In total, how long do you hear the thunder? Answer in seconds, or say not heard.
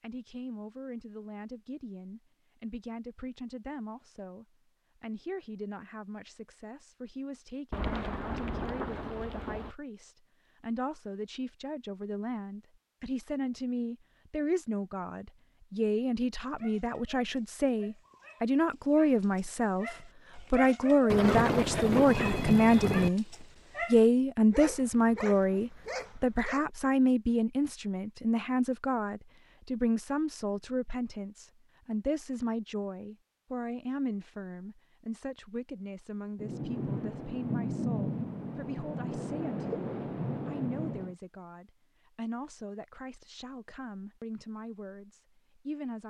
9 s.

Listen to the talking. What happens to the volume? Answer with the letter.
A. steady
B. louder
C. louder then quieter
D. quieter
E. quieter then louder
C.